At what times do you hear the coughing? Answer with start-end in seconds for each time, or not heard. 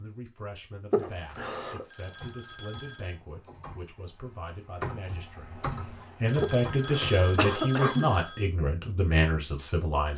0.9-1.9, 6.4-8.1.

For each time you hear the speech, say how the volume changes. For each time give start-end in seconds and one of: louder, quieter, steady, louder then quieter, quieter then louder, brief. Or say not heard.
0.0-10.1 louder.